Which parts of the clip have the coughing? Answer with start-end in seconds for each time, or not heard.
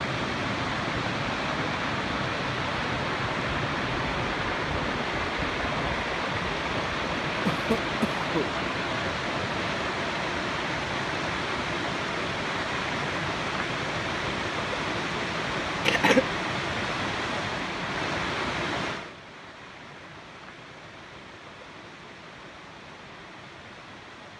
7.5-8.4, 15.8-16.2.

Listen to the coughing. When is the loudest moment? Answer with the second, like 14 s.
16 s.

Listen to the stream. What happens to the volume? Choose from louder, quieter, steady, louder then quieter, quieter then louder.
quieter.